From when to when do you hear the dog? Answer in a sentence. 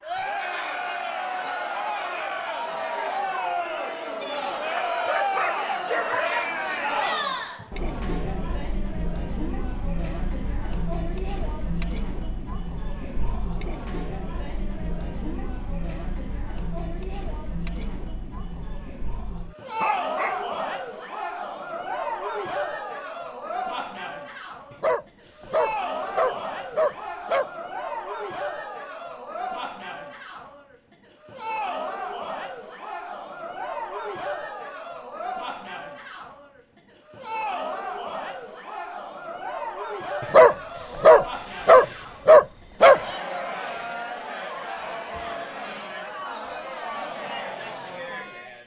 You can hear the dog from 4.8 to 6.5 s, from 19.8 to 20.4 s, from 24.7 to 27.5 s and from 40.2 to 43.0 s.